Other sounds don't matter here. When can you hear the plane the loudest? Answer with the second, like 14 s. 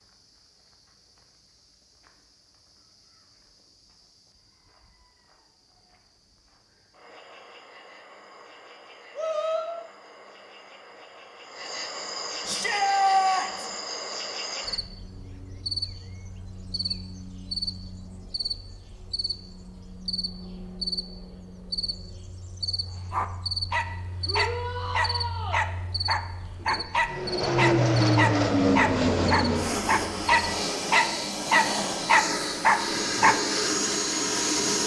28 s.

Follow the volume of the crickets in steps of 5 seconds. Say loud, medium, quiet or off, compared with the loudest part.
quiet, quiet, loud, loud, loud, loud, loud.